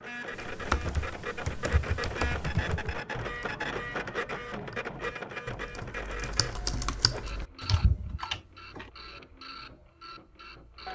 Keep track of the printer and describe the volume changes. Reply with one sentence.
The volume of the printer goes down.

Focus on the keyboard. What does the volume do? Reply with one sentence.
The volume of the keyboard goes down, then up.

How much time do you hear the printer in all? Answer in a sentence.
You can hear the printer for 11 seconds altogether.